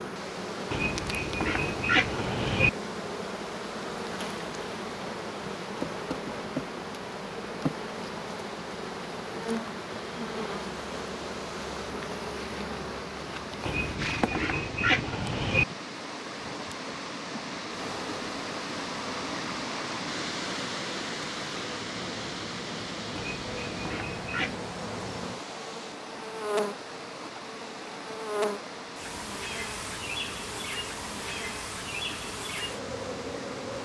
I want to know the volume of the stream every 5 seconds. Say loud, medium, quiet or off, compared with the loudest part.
medium, medium, medium, loud, loud, medium, medium.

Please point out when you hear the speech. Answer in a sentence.
The speech can't be heard in this clip.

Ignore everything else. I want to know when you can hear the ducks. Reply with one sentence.
You can hear the ducks from 0.7 to 2.7 s, from 13.7 to 15.7 s and from 23.1 to 24.6 s.